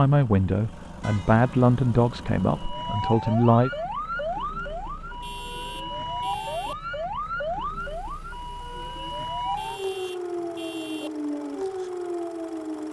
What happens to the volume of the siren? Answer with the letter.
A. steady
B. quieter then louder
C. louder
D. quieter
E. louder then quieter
A.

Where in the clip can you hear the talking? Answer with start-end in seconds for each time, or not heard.
0.0-3.7.